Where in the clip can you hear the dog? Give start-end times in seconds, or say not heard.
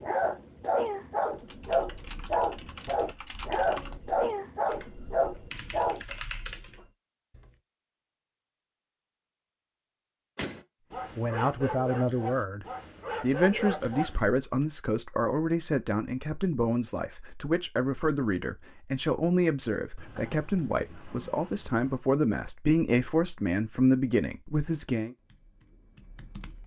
0.0-6.0, 10.9-14.7.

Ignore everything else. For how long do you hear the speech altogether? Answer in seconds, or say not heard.
14 s.